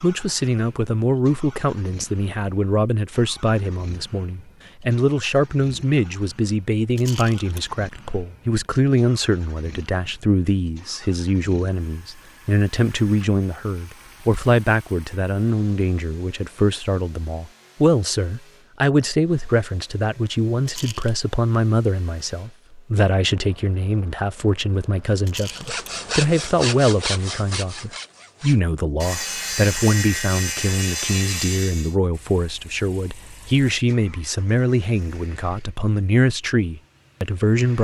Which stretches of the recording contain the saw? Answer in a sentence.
The saw can be heard from 25.4 to 31.9 s.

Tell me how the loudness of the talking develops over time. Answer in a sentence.
The volume of the talking stays about the same.